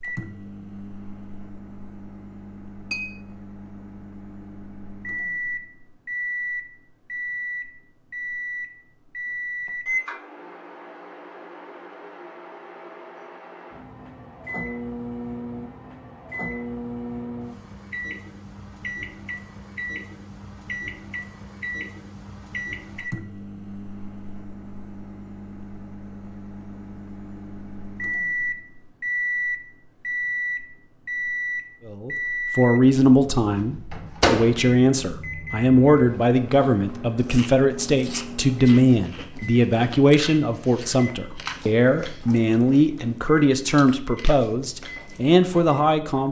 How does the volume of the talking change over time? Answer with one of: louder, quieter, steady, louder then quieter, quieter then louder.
steady.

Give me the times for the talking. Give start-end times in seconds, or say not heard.
31.9-46.2.